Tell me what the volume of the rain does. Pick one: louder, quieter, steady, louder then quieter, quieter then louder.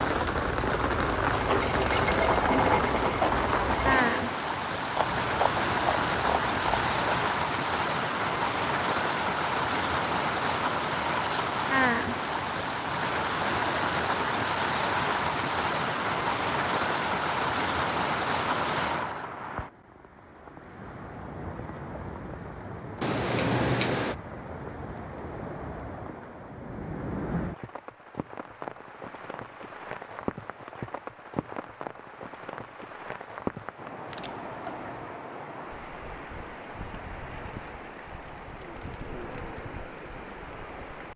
quieter.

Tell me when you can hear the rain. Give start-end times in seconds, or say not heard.
0.0-41.1.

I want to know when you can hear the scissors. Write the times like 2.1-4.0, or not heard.
5.0-7.3, 23.0-24.1, 34.1-35.0.